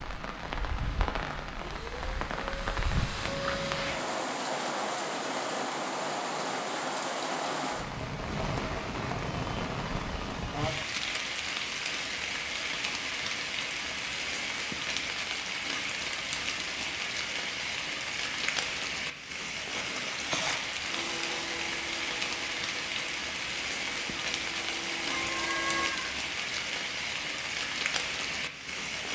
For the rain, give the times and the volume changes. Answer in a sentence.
The rain can be heard from 0.0 to 29.1 s, at a steady volume.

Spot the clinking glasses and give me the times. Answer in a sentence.
The clinking glasses can't be heard in this clip.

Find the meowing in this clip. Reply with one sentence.
You can hear the meowing from 25.1 to 26.1 s.